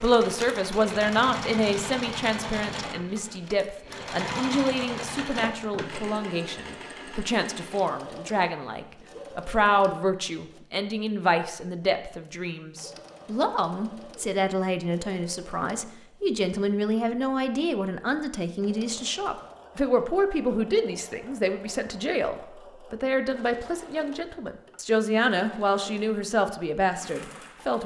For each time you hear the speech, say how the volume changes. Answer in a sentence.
You can hear the speech from 0.0 to 27.8 s, at a steady volume.